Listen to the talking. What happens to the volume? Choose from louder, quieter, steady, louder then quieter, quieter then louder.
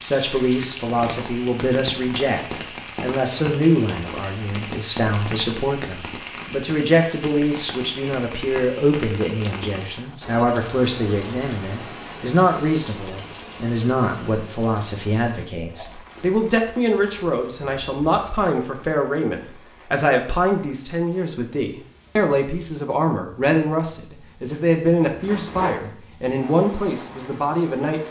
steady.